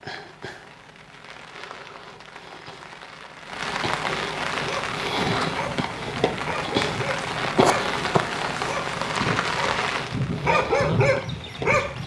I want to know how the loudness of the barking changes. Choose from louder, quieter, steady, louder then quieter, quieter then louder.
louder.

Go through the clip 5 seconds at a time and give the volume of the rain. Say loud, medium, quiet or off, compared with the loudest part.
medium, loud, medium.